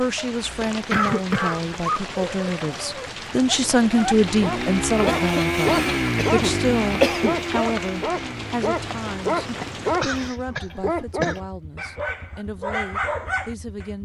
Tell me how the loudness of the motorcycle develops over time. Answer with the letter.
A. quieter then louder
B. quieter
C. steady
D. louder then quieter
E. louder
B.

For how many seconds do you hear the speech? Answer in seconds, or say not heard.
14 s.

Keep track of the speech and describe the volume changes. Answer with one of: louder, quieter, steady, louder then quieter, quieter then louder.
louder then quieter.